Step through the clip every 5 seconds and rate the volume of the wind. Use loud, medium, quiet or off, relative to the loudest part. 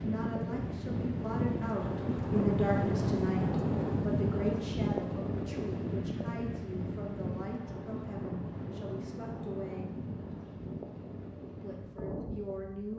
loud, medium, medium.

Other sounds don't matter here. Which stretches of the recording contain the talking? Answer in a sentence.
You can hear the talking from 0.0 to 9.9 s and from 11.6 to 12.9 s.